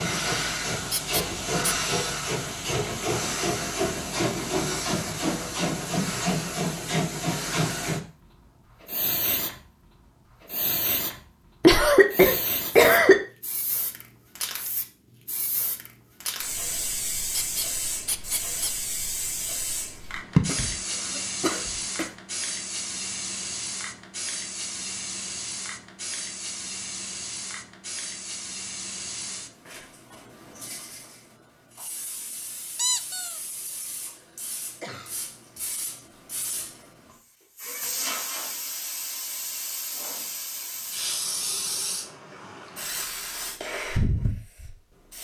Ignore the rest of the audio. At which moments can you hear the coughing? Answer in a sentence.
You can hear the coughing from 11.6 to 13.2 s, from 20.4 to 22.1 s and from 34.2 to 35.2 s.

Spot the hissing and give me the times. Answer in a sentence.
You can hear the hissing from 0.0 to 45.1 s.